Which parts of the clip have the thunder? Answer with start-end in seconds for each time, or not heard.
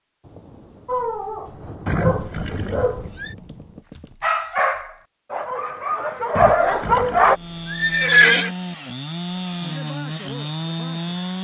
0.2-3.8.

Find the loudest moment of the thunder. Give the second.
2 s.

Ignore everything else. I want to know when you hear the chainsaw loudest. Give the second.
11 s.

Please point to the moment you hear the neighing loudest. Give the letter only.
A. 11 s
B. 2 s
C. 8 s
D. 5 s
C.